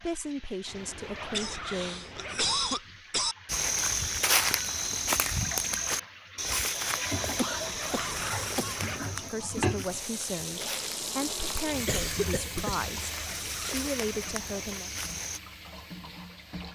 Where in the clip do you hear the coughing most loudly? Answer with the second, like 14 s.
3 s.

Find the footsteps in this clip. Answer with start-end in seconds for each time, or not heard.
3.5-15.4.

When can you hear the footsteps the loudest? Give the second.
4 s.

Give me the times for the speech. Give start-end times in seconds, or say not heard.
0.0-2.1, 9.1-14.9.